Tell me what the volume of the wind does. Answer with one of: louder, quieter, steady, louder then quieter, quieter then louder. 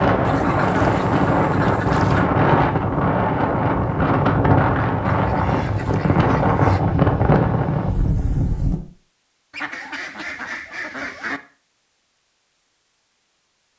steady.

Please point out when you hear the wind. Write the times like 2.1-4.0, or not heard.
0.0-8.8.